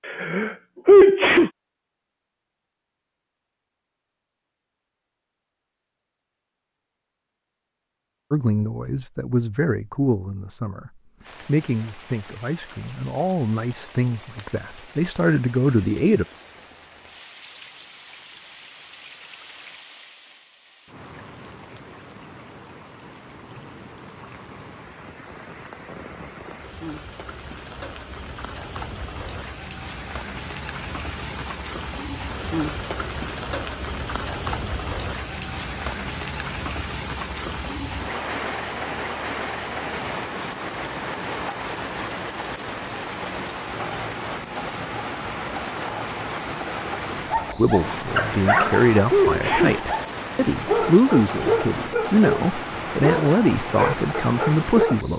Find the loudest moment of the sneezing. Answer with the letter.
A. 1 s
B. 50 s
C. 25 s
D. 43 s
A.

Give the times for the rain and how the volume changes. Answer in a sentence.
You can hear the rain from 11.2 to 55.1 s, getting louder.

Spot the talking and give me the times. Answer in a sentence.
The talking can be heard from 8.3 to 16.2 s and from 47.5 to 55.1 s.